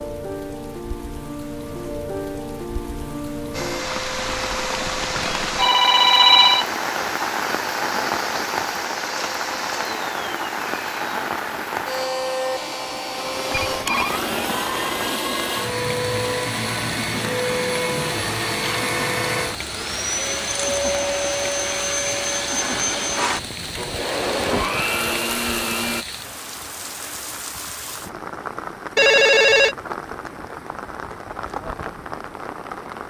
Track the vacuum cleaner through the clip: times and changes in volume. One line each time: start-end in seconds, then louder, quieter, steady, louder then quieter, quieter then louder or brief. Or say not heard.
3.5-26.1 louder.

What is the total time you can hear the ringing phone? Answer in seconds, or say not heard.
2 s.